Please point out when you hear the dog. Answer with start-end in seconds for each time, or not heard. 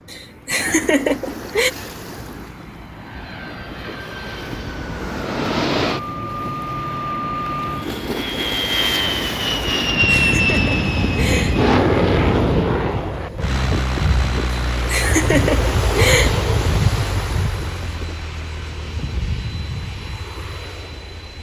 not heard.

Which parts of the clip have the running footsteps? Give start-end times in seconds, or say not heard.
not heard.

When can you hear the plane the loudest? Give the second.
12 s.